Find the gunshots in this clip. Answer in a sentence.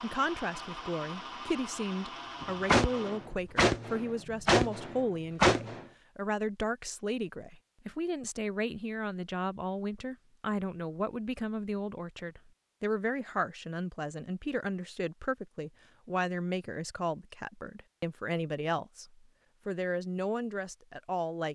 The gunshots can be heard from 2.4 to 5.8 s.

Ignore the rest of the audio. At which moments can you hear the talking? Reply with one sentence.
You can hear the talking from 0.0 to 21.4 s.